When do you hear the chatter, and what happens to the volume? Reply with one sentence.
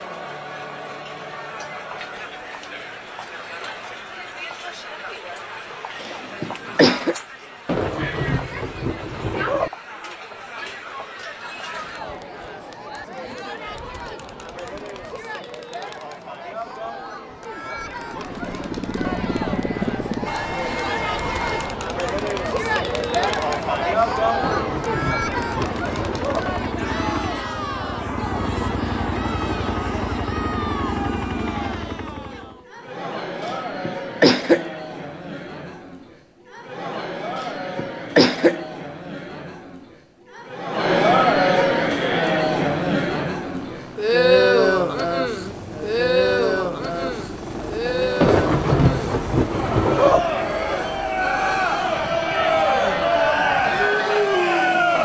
The chatter can be heard from 0.0 to 54.9 s, getting louder.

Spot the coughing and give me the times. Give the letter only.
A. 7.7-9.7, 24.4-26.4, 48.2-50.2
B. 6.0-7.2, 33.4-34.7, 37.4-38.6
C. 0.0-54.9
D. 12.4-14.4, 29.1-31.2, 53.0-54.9
B.